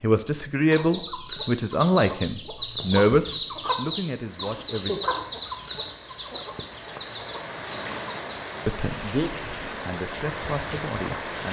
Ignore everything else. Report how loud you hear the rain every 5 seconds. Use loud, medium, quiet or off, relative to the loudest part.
quiet, loud, loud.